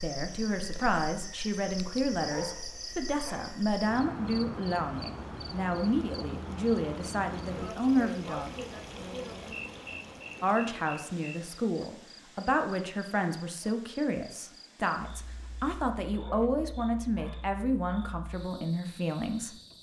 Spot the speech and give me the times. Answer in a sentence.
You can hear the speech from 0.0 to 8.5 s and from 10.4 to 19.6 s.